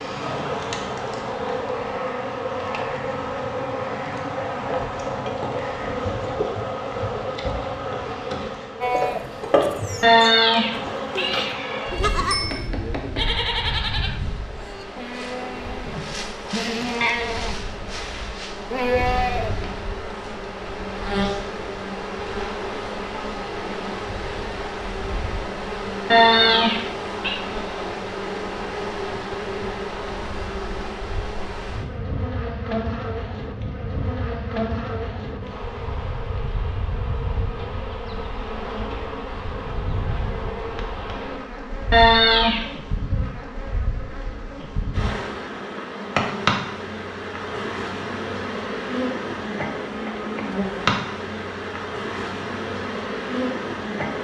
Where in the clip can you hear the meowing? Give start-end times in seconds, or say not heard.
10.0-12.2, 26.1-27.4, 41.9-42.6.